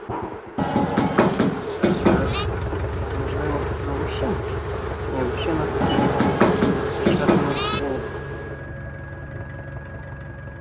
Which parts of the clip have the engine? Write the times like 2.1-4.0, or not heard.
2.1-10.5.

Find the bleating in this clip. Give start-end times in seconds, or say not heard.
0.6-2.5, 5.8-7.8.